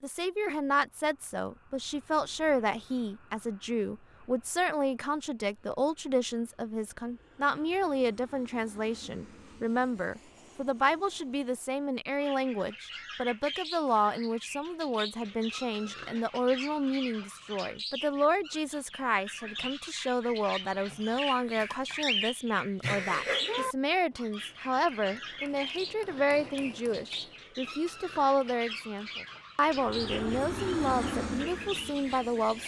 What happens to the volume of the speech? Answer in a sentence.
The volume of the speech stays about the same.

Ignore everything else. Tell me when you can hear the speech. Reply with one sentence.
You can hear the speech from 0.0 to 32.6 s.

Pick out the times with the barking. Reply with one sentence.
You can't hear the barking here.